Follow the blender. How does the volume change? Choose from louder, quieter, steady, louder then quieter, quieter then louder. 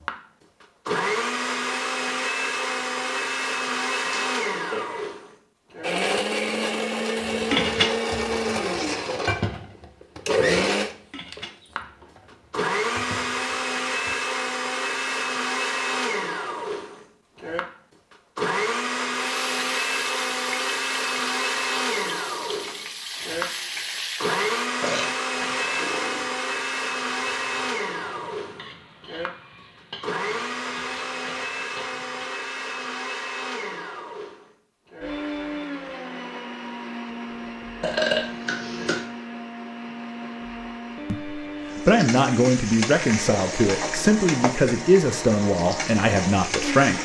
quieter.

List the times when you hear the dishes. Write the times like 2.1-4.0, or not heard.
7.2-14.2.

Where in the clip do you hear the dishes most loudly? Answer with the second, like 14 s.
8 s.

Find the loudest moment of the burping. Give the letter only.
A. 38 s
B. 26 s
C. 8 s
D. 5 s
A.